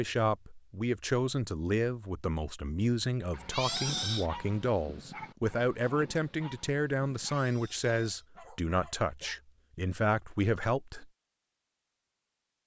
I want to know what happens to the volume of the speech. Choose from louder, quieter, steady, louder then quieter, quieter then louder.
steady.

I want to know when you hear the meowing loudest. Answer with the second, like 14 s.
4 s.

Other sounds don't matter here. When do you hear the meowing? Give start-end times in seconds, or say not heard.
3.5-4.2, 7.2-8.2.